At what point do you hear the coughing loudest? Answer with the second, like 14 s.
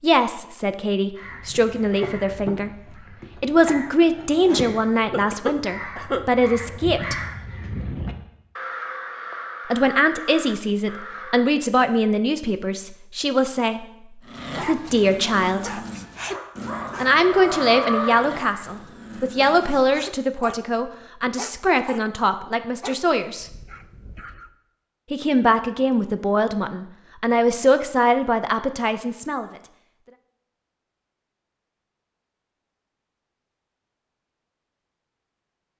6 s.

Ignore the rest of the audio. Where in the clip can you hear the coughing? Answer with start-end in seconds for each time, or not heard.
4.5-6.2.